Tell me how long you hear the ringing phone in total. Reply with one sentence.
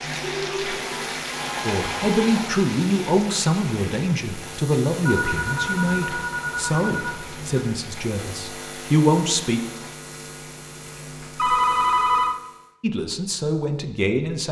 The ringing phone can be heard for 6 seconds in total.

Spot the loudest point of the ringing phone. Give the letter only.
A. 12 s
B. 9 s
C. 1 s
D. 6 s
A.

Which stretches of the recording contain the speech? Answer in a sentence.
The speech can be heard from 1.6 to 9.6 s and from 12.8 to 14.4 s.